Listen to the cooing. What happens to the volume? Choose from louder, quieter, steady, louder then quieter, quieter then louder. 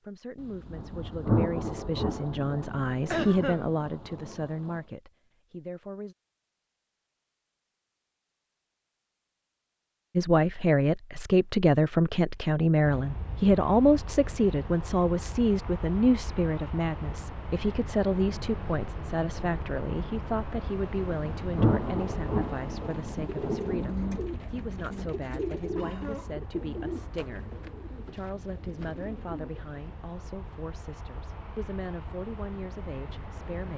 quieter.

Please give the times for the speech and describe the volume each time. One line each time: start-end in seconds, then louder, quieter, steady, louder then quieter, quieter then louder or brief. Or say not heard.
0.0-6.2 louder then quieter
10.2-33.7 quieter.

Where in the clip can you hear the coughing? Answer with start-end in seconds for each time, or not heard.
3.1-4.2, 25.8-26.5.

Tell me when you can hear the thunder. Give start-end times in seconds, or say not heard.
0.4-4.8, 20.9-24.2.